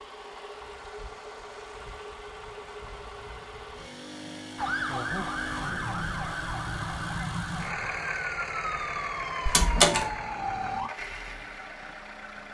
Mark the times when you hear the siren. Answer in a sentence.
You can hear the siren from 4.5 to 10.9 s.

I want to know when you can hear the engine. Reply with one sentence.
The engine can be heard from 0.0 to 12.4 s.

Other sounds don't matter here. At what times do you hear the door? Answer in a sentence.
You can hear the door from 9.4 to 10.1 s.